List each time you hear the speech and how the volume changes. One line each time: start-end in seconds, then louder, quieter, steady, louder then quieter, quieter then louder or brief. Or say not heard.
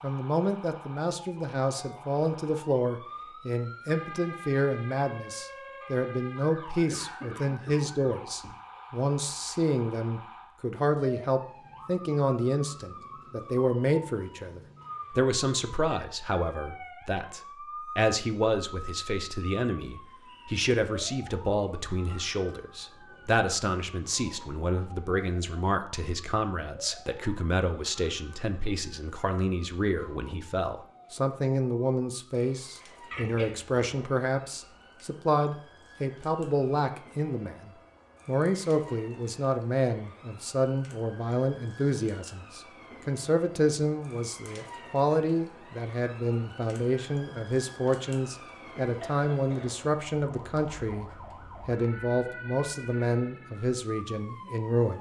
0.0-54.9 steady.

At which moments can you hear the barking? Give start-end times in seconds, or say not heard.
not heard.